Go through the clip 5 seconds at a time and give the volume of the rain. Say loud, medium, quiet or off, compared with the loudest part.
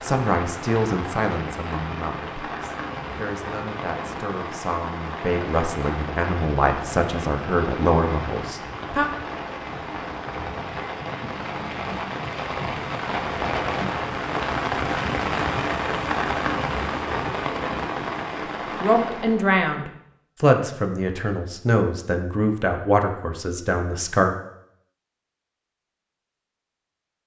medium, medium, loud, loud, off, off.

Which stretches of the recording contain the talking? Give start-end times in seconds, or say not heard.
0.0-9.1, 18.8-24.4.